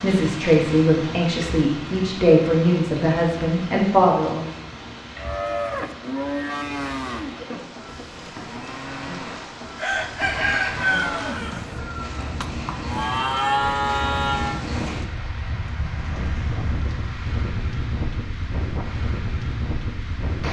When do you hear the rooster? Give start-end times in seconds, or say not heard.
9.8-12.3.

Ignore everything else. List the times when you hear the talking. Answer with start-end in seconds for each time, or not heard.
0.0-4.5.